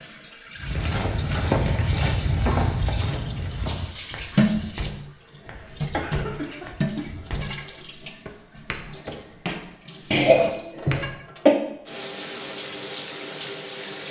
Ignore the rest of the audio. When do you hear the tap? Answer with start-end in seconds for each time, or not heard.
0.0-14.0.